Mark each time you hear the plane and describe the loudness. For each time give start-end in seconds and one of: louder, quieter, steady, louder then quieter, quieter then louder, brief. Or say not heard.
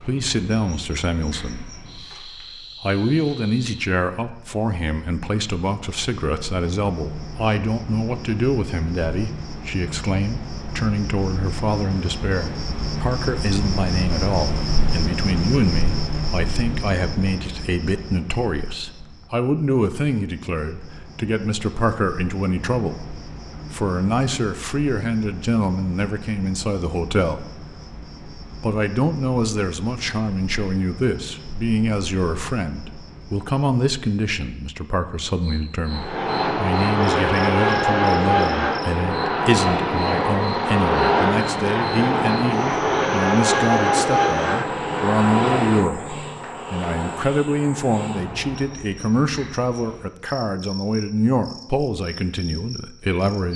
35.9-48.9 quieter.